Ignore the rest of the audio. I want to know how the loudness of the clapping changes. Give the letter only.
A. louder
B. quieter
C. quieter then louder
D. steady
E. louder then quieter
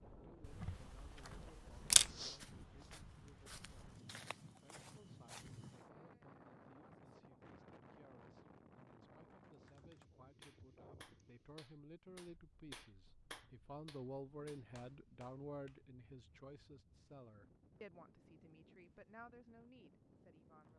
E.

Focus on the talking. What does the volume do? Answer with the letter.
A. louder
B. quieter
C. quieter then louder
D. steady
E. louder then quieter
E.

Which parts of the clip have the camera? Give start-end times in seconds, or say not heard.
0.4-2.1.